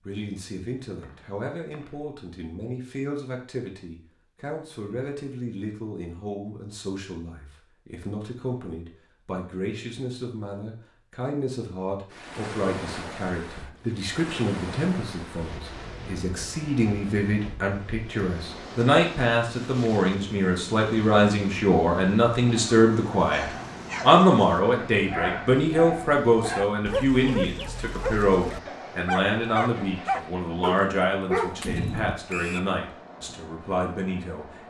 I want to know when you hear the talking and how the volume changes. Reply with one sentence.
You can hear the talking from 0.0 to 34.6 s, getting louder then quieter.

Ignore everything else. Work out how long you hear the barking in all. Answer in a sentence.
You can hear the barking for 10 seconds altogether.